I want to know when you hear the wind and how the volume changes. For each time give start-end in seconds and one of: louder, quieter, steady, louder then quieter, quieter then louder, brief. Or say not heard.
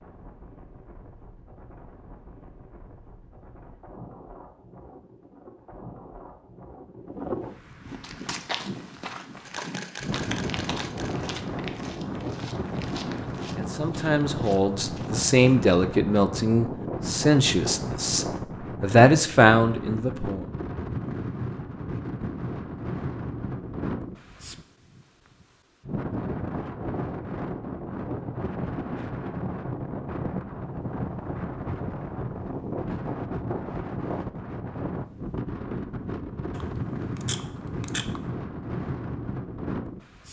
0.0-40.2 louder.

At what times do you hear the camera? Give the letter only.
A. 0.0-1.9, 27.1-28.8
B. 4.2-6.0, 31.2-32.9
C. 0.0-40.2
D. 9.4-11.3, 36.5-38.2
D.